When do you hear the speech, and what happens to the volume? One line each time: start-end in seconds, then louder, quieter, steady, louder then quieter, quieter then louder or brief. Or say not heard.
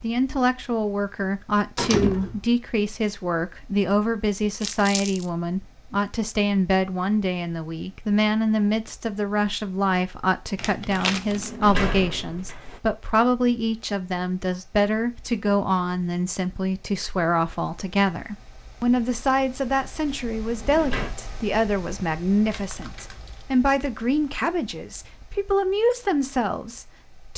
0.0-27.3 steady.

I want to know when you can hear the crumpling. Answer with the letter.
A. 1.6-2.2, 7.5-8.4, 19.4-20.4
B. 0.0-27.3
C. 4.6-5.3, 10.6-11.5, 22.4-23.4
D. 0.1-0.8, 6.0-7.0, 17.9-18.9
C.